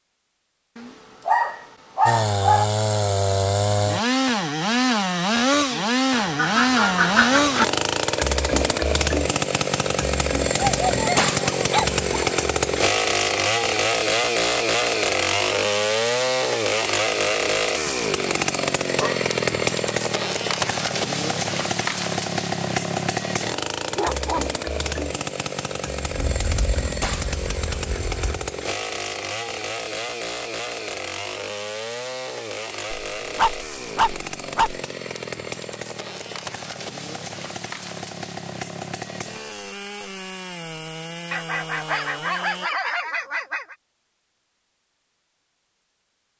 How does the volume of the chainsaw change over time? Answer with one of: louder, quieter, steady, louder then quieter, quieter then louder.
quieter.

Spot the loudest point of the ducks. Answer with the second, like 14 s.
7 s.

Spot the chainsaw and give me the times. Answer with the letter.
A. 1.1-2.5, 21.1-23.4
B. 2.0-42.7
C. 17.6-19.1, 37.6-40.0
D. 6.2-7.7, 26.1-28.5
B.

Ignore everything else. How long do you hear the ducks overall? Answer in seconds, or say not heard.
4 s.